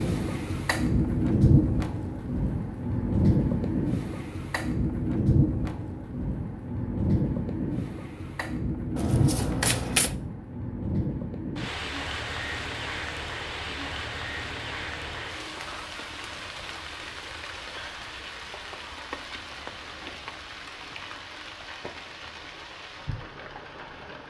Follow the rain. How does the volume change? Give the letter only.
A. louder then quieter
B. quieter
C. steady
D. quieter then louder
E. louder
B.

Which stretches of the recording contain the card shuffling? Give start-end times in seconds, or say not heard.
8.9-10.2.